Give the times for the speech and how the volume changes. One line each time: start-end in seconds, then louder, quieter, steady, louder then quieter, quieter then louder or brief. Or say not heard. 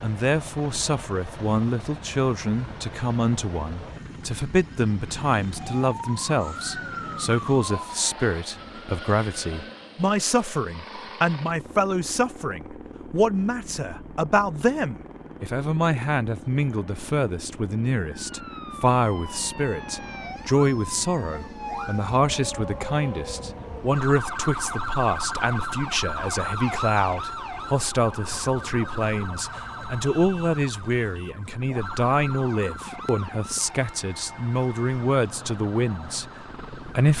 0.0-37.1 steady.